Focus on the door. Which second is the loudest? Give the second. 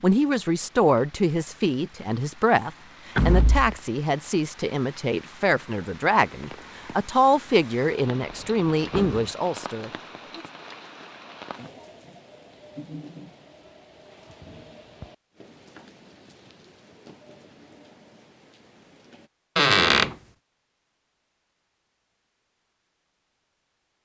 20 s.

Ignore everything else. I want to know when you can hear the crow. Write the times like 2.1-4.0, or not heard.
not heard.